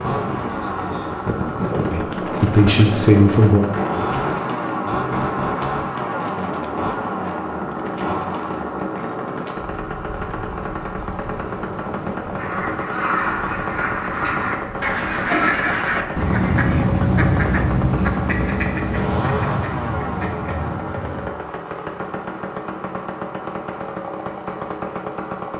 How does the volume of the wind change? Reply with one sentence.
The loudness of the wind goes down.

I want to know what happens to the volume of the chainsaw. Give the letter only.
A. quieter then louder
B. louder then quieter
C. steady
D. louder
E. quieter
C.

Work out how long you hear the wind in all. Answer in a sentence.
You can hear the wind for 16 seconds altogether.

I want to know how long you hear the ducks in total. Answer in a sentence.
You can hear the ducks for 9 seconds altogether.